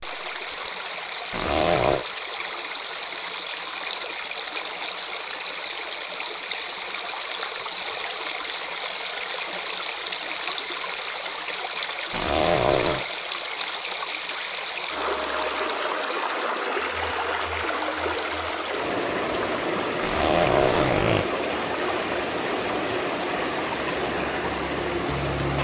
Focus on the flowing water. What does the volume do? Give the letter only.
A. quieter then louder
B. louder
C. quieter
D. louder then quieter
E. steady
E.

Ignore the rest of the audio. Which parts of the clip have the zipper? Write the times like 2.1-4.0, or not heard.
1.3-2.0, 12.1-13.1, 20.0-21.2.